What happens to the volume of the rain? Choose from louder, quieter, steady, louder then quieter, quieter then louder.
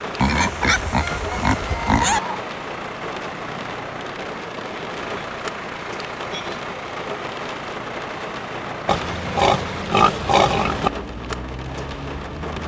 steady.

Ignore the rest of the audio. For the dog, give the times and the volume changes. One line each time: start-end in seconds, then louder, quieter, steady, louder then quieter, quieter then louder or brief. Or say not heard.
not heard.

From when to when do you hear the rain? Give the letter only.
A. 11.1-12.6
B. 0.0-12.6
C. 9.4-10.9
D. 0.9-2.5
B.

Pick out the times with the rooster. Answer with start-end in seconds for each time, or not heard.
0.9-2.5.